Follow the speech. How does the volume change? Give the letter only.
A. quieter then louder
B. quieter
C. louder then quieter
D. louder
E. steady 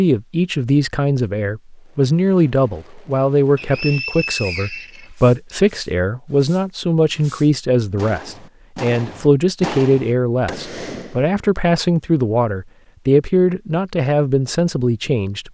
E.